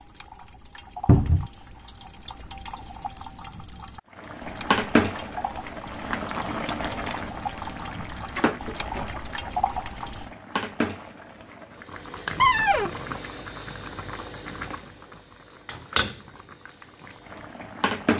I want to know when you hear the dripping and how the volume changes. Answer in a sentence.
The dripping can be heard from 0.0 to 10.3 s, getting louder.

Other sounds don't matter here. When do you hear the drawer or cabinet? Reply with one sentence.
The drawer or cabinet can be heard from 1.1 to 1.5 s, from 8.3 to 9.2 s and from 12.3 to 12.9 s.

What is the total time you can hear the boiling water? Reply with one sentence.
You can hear the boiling water for 14 seconds altogether.